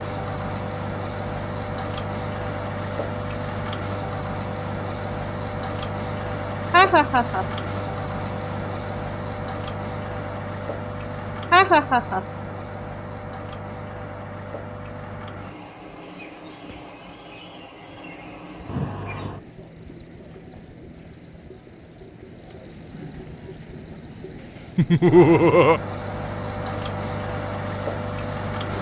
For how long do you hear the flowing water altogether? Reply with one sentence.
You can't hear the flowing water here.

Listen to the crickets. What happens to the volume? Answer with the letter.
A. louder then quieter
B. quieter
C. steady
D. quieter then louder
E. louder
D.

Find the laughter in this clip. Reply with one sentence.
The laughter can be heard from 6.7 to 7.5 s, from 11.5 to 12.2 s and from 24.8 to 25.8 s.